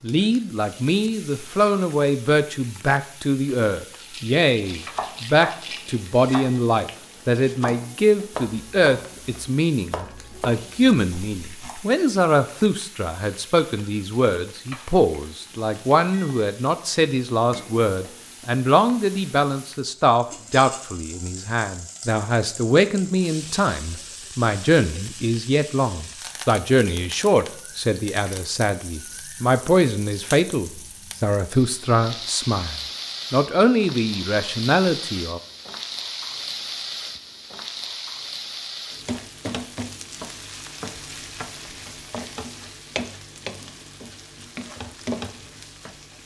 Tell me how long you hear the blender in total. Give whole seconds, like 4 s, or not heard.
not heard.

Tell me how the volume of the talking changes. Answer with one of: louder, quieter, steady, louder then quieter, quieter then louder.
steady.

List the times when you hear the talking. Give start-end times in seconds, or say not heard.
0.0-35.4.